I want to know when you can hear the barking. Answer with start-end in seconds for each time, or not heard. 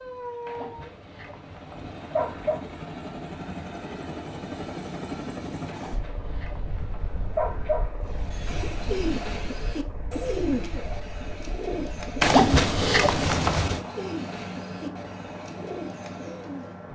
0.5-2.6, 5.7-7.9, 12.2-13.8.